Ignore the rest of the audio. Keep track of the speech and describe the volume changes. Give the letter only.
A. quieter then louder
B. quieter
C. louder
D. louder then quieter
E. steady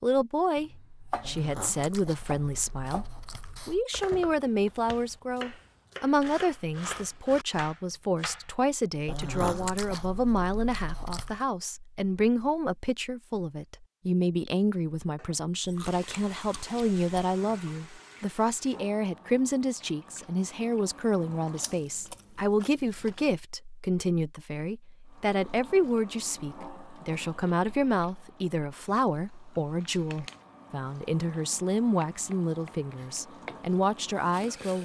E.